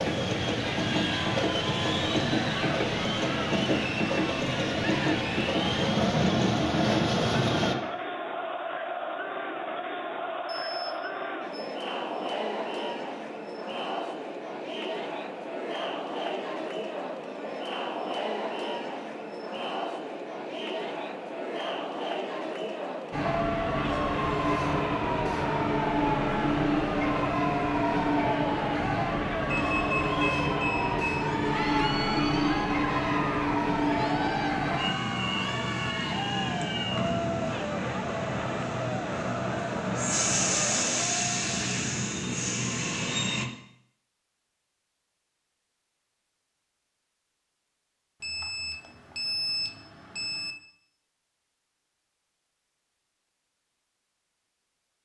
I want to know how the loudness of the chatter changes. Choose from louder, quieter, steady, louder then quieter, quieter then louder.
steady.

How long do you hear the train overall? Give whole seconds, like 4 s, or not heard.
28 s.